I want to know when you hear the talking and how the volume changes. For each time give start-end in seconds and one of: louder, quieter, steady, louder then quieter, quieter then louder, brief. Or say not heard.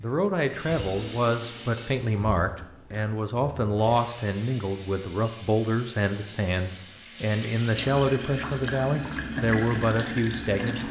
0.0-10.8 steady.